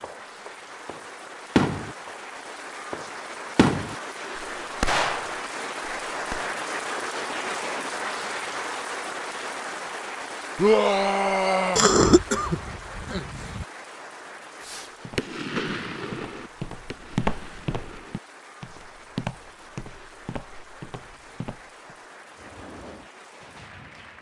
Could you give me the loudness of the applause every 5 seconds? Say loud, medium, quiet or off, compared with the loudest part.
medium, loud, medium, quiet, quiet.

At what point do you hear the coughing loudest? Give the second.
12 s.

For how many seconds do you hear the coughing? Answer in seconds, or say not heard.
2 s.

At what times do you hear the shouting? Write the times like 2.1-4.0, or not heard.
10.6-11.8.